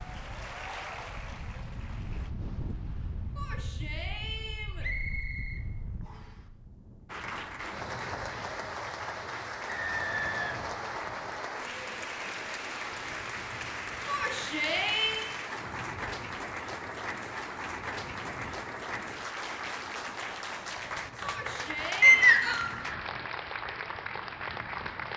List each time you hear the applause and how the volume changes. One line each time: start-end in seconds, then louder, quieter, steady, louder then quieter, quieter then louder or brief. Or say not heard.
0.0-2.3 brief
7.0-25.1 steady.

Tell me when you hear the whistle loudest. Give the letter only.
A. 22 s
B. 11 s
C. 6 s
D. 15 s
A.